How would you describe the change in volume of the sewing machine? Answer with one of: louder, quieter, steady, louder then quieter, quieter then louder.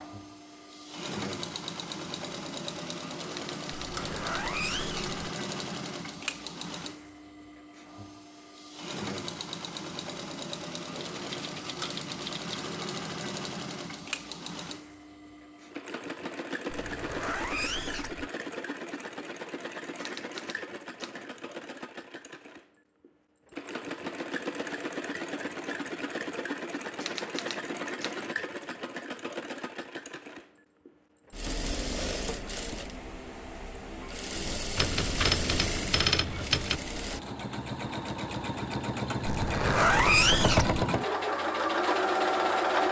louder.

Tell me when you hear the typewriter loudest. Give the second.
36 s.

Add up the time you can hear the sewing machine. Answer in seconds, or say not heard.
43 s.